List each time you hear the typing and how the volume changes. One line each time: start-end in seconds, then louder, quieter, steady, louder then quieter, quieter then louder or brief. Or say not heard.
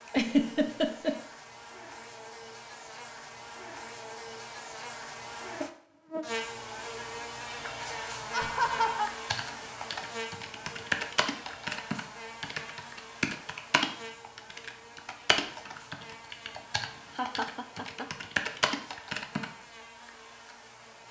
9.2-19.4 steady.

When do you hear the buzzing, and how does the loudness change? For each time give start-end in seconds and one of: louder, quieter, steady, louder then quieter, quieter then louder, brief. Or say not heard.
0.0-21.0 louder then quieter.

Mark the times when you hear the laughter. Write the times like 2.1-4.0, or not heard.
0.1-1.1, 8.3-9.1, 17.1-18.1.